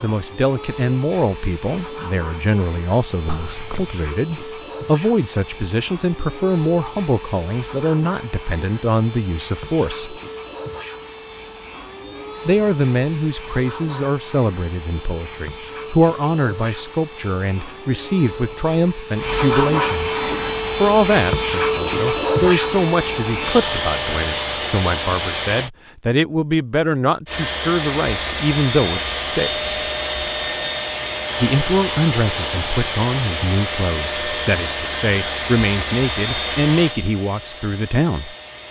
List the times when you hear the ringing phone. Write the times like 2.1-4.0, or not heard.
3.2-4.0.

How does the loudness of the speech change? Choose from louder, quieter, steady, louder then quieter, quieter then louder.
steady.